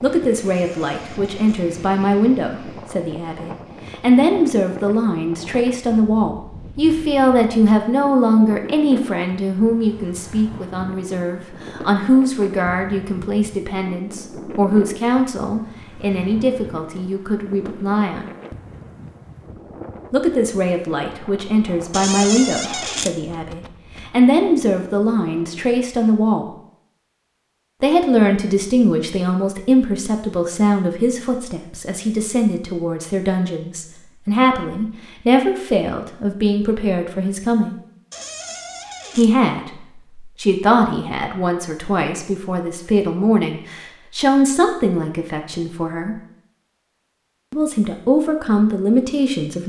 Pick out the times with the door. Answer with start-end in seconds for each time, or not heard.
0.5-1.6, 21.9-23.1, 38.1-39.3.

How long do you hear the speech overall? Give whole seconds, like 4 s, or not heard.
44 s.